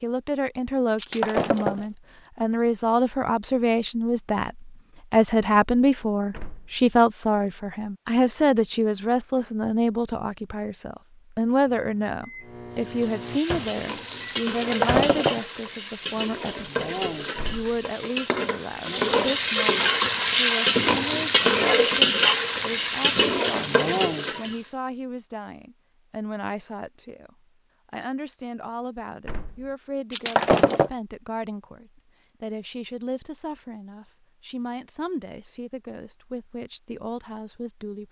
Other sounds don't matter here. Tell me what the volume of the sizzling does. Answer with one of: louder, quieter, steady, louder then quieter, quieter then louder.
louder.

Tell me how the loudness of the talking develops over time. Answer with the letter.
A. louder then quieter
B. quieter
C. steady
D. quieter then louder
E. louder
B.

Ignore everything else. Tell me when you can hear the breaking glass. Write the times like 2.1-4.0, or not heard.
0.9-1.9, 14.6-15.4, 30.1-30.9.